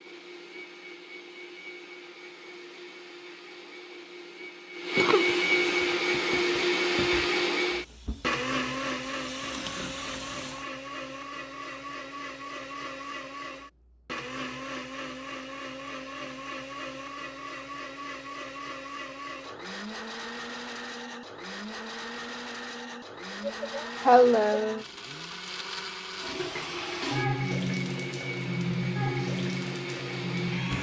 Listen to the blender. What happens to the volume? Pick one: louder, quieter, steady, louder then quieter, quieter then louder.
quieter.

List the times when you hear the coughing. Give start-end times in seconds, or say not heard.
5.0-5.5, 23.4-24.9.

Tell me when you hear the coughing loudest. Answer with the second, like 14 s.
24 s.